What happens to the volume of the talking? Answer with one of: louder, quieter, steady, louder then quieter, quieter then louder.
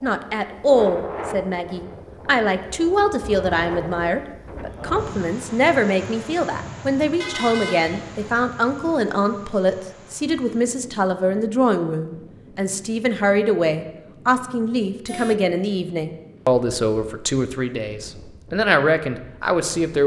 steady.